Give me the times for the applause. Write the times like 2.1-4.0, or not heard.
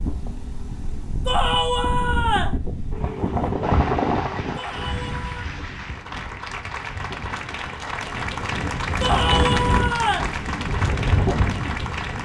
3.6-12.2.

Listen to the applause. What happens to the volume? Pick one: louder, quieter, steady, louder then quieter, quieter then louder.
louder.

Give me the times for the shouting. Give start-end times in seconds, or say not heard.
1.2-2.6, 4.5-5.5, 9.0-10.3.